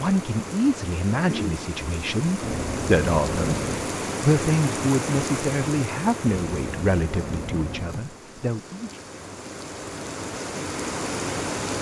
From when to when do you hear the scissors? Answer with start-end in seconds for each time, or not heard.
2.4-3.9, 6.2-8.1.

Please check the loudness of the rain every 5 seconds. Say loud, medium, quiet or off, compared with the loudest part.
loud, medium, loud.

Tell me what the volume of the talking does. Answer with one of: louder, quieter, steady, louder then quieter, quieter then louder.
quieter.